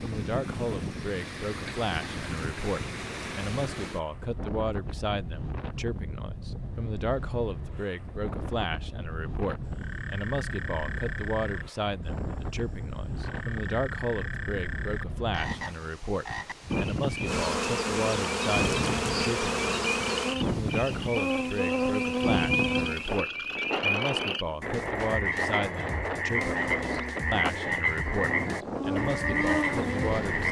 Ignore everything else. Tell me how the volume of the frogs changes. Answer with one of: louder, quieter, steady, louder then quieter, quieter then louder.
louder.